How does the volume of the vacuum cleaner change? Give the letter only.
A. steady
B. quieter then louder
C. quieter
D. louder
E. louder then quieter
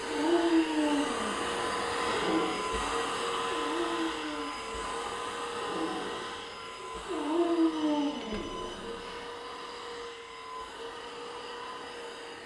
C.